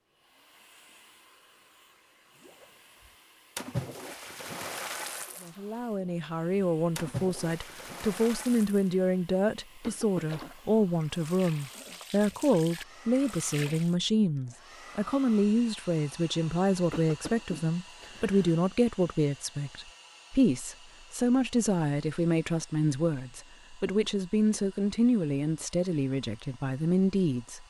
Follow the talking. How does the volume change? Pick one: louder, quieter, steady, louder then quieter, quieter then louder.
steady.